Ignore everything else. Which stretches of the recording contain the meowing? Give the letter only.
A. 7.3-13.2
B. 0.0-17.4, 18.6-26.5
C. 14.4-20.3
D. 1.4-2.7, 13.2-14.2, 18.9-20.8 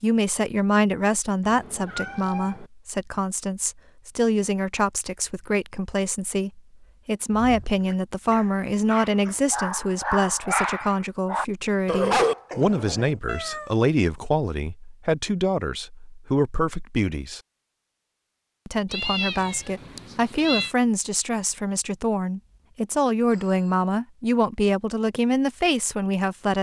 D.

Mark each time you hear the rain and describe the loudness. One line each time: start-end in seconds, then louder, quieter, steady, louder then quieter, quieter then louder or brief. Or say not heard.
not heard.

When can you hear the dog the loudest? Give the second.
12 s.